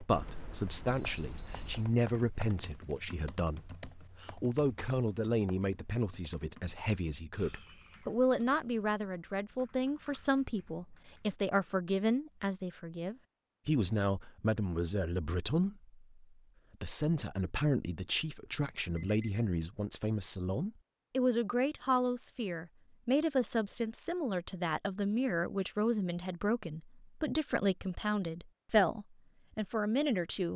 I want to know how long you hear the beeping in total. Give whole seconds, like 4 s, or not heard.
3 s.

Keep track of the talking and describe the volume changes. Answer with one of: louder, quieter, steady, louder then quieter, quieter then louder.
steady.